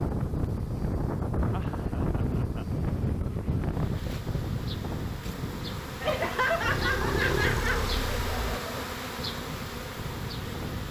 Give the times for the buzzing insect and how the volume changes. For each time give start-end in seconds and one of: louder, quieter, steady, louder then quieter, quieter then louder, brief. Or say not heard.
0.0-10.8 louder.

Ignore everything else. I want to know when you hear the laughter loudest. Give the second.
7 s.